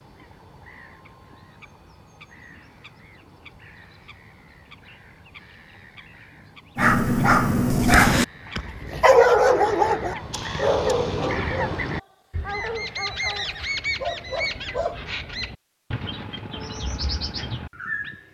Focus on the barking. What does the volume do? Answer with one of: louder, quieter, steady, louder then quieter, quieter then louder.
quieter.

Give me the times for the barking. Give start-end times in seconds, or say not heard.
6.8-15.0.